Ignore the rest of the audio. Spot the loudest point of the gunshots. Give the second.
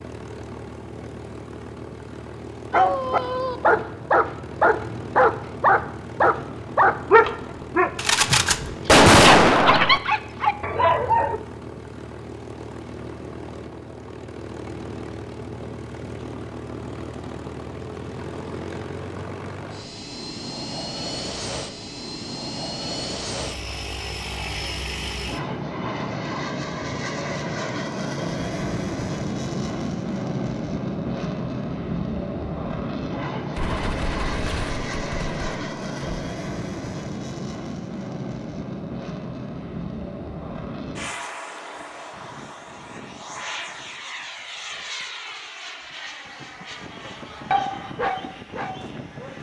9 s.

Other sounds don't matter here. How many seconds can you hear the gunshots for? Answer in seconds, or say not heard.
5 s.